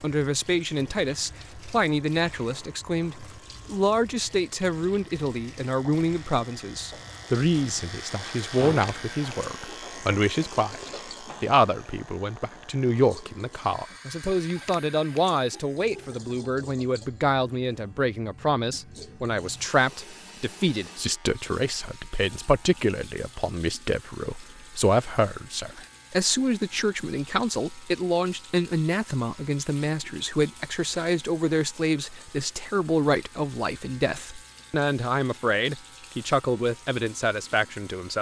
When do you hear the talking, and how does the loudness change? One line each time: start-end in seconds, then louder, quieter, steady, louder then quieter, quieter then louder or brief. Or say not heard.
0.0-38.1 steady.